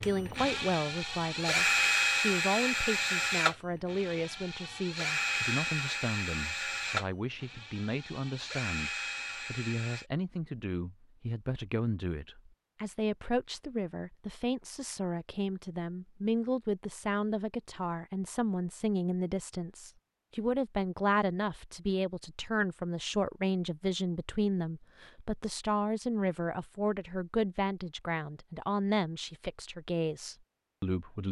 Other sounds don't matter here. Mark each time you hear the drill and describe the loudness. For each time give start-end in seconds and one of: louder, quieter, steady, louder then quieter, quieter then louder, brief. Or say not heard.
0.0-10.1 quieter.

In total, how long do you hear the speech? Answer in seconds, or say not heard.
31 s.